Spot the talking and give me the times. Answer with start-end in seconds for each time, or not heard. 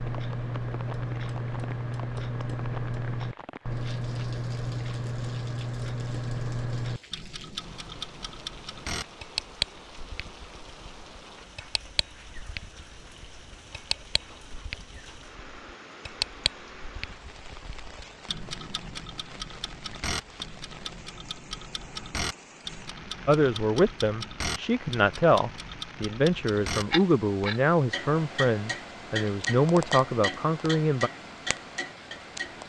23.2-31.1.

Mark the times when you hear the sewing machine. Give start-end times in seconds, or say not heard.
not heard.